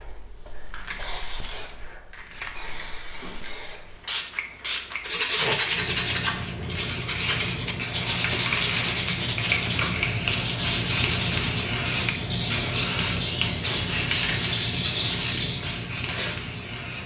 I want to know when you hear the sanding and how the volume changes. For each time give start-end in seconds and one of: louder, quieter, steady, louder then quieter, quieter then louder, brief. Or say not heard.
5.0-16.4 steady.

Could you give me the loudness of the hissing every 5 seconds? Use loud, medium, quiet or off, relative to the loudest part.
medium, loud, loud, medium.